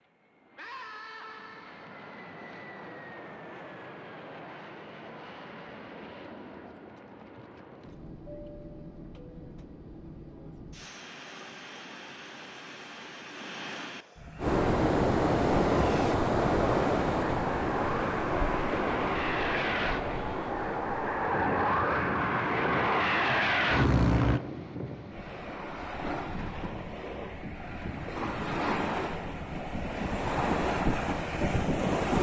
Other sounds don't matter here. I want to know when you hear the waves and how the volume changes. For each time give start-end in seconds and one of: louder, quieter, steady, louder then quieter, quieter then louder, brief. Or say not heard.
14.4-32.1 quieter then louder.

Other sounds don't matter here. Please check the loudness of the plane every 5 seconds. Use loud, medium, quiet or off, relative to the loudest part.
quiet, quiet, quiet, medium, loud, off, off.